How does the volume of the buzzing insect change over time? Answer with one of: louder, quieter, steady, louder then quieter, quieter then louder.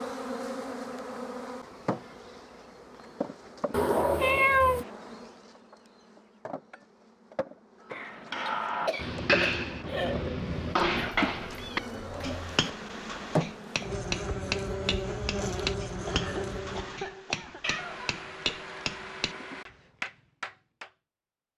quieter then louder.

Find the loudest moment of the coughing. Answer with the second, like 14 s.
4 s.